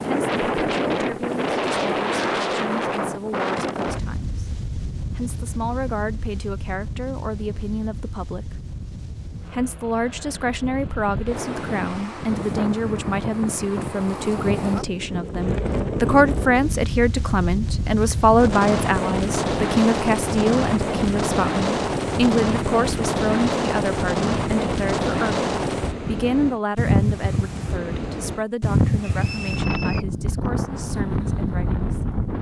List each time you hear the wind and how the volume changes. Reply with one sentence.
You can hear the wind from 0.0 to 32.3 s, getting quieter then louder.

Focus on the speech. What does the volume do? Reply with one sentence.
The volume of the speech goes up, then down.